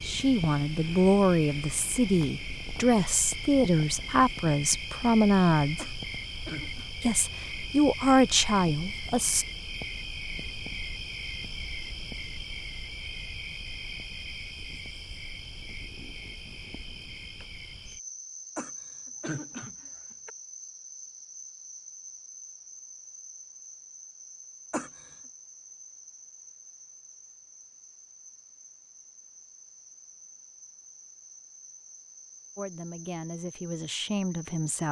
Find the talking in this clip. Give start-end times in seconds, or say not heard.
0.0-5.8, 7.0-9.4, 32.5-34.8.